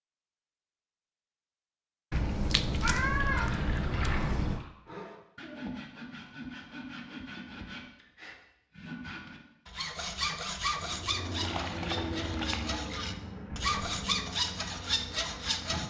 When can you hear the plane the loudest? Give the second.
12 s.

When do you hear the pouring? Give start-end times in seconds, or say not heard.
3.3-4.7, 11.4-13.1.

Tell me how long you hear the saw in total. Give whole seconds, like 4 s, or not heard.
11 s.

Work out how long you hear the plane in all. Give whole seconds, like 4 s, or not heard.
5 s.